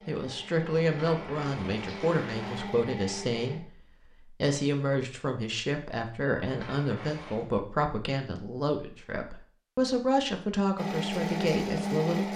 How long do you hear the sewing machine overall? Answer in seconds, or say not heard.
5 s.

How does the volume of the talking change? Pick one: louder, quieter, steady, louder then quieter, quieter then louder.
steady.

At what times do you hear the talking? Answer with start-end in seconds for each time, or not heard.
0.1-12.3.